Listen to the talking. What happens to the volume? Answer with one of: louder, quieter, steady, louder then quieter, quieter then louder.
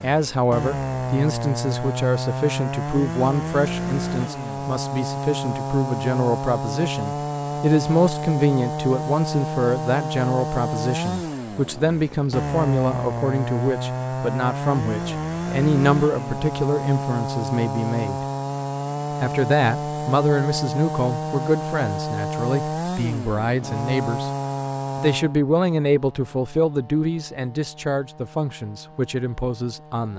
steady.